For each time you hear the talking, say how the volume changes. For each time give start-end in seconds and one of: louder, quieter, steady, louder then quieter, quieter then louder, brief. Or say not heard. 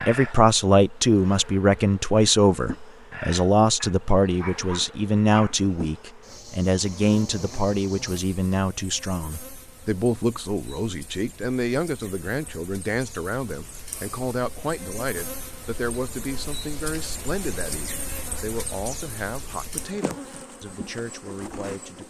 0.1-22.0 quieter.